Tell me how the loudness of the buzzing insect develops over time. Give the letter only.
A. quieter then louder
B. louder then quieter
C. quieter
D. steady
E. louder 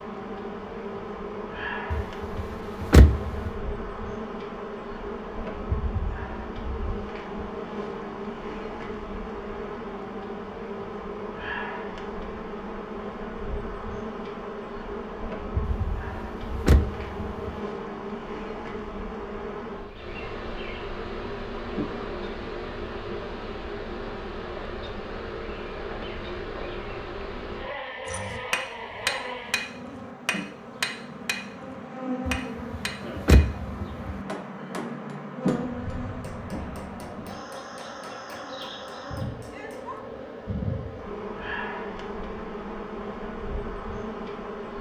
D.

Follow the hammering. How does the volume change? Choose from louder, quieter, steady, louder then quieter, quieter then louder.
quieter.